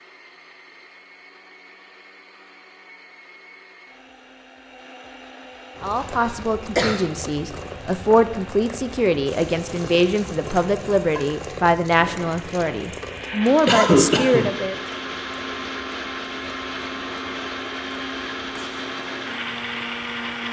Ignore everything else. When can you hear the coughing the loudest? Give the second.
14 s.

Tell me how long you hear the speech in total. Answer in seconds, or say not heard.
9 s.